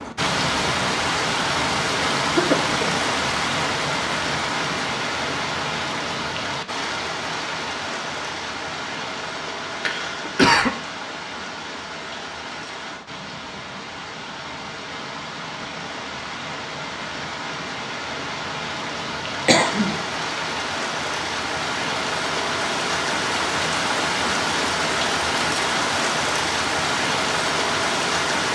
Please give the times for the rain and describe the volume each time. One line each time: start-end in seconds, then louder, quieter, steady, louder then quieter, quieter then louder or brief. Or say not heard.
0.0-28.5 quieter then louder.